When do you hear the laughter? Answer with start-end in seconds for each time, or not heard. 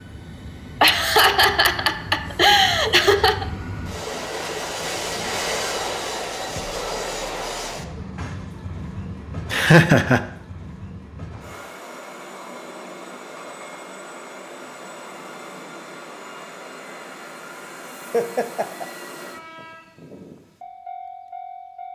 0.8-3.5, 9.5-10.2, 18.1-18.9.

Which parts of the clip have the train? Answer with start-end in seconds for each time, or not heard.
0.0-21.9.